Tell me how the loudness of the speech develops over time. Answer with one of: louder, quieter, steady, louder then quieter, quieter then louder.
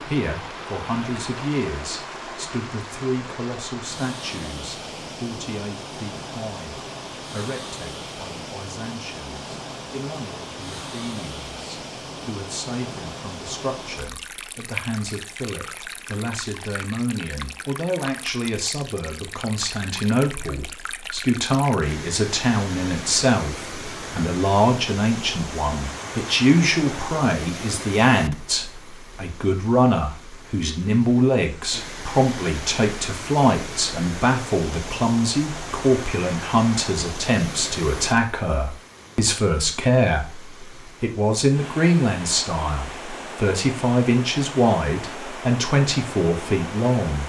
louder.